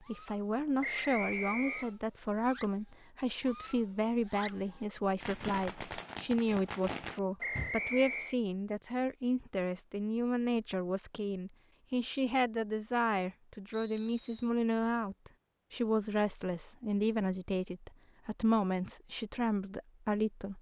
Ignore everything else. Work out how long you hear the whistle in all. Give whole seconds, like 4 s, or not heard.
3 s.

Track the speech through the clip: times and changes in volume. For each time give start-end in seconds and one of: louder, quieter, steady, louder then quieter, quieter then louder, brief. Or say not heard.
0.1-20.5 steady.